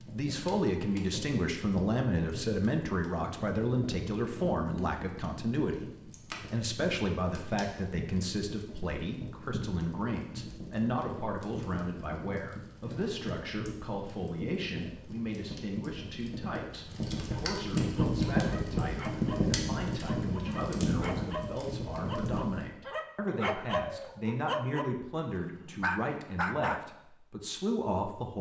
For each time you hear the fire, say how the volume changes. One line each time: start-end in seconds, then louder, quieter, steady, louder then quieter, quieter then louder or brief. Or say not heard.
0.0-22.6 louder.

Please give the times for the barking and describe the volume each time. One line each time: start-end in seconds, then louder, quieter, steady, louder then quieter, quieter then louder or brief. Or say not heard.
17.9-26.8 louder.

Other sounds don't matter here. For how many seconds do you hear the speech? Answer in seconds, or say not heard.
28 s.